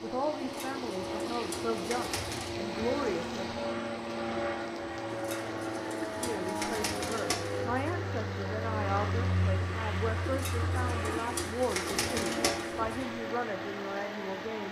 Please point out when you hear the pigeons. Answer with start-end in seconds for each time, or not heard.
0.4-2.5, 5.1-7.9, 10.2-13.1.